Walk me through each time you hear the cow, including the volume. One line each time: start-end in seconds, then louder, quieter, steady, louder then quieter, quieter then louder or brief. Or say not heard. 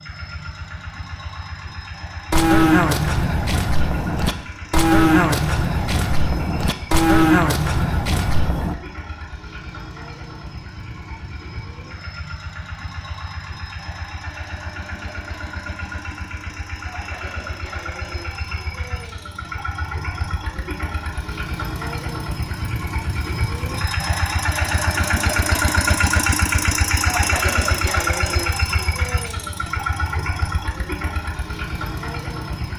2.3-8.8 steady.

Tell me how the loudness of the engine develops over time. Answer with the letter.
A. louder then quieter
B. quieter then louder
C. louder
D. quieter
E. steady
C.